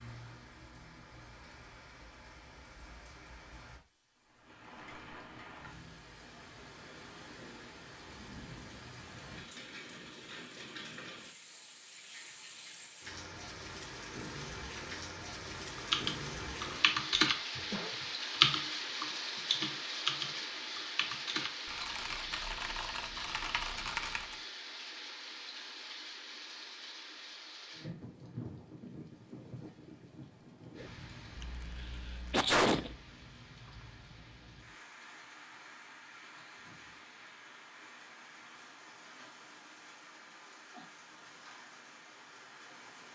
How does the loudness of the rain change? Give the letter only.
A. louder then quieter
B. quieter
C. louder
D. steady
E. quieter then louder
A.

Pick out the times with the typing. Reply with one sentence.
The typing can be heard from 15.8 to 24.4 s.